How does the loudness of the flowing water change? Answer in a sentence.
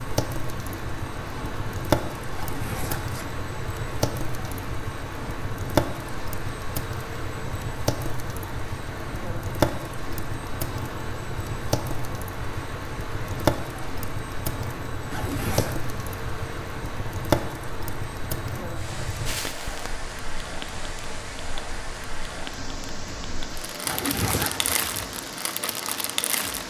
The volume of the flowing water stays about the same.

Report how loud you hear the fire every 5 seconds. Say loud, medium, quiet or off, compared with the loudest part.
loud, loud, loud, loud, medium, loud.